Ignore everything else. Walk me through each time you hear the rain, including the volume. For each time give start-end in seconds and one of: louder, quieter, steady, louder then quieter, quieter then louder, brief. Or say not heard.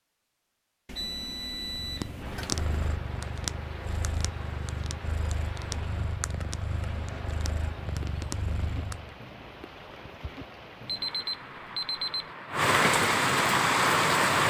2.1-14.4 louder.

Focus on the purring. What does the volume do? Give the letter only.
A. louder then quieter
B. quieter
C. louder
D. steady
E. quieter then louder
D.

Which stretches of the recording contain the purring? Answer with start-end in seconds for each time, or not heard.
1.6-9.2.